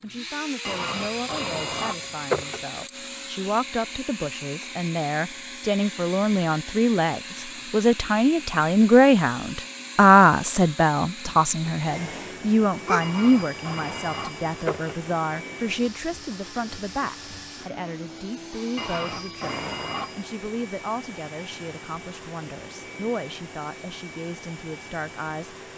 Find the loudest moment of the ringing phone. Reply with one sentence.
The loudest moment of the ringing phone is at 2 seconds.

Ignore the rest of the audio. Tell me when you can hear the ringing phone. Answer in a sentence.
You can hear the ringing phone from 0.7 to 2.6 s, from 13.0 to 14.9 s and from 18.8 to 20.2 s.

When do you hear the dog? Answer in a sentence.
The dog can be heard from 12.4 to 13.1 s.